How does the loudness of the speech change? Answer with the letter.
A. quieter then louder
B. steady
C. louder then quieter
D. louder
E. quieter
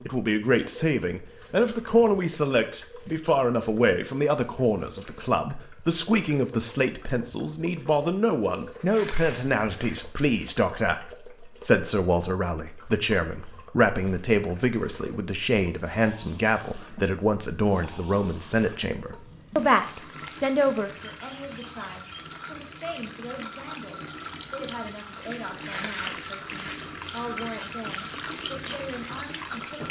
E.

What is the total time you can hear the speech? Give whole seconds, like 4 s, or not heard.
30 s.